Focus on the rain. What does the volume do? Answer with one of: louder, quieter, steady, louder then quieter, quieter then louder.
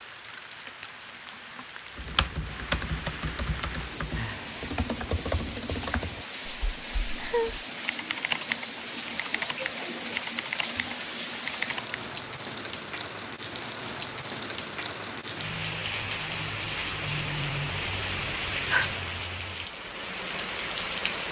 louder.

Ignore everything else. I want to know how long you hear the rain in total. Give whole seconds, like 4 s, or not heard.
21 s.